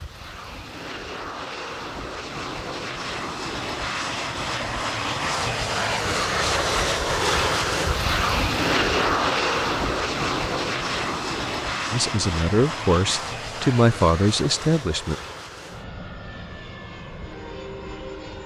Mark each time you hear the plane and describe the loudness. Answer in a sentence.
The plane can be heard from 0.0 to 18.4 s, getting louder then quieter.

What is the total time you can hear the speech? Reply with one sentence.
You can hear the speech for 3 seconds altogether.